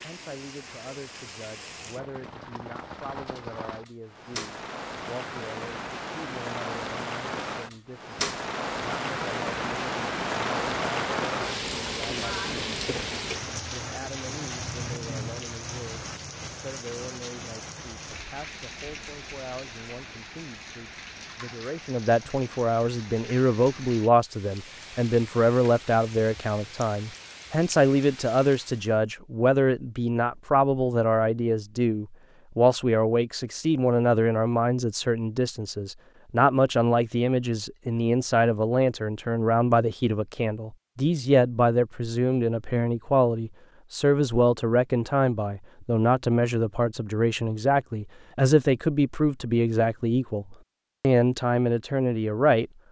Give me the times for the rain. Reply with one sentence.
The rain can be heard from 0.0 to 29.0 s.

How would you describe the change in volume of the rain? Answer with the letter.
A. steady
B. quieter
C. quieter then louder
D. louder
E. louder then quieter
E.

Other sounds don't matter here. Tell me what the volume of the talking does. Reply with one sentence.
The volume of the talking goes up.